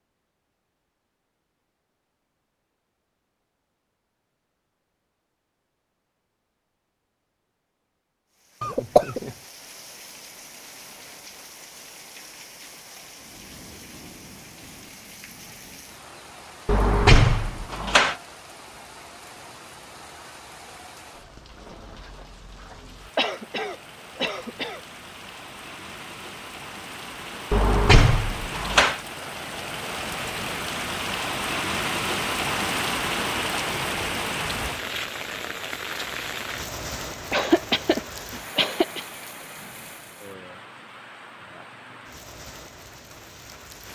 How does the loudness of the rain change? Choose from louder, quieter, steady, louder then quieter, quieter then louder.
louder then quieter.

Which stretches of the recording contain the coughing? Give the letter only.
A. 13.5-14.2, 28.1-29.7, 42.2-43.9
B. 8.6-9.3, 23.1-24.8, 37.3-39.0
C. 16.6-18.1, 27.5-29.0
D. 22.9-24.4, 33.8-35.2
B.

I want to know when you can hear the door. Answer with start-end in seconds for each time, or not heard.
16.6-18.1, 27.5-29.0.